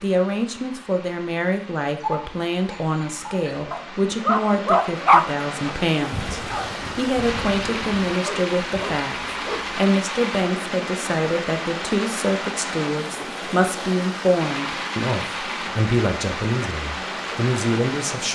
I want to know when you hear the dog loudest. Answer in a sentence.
The volume of the dog peaks at 5 seconds.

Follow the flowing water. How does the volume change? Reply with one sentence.
The volume of the flowing water goes up.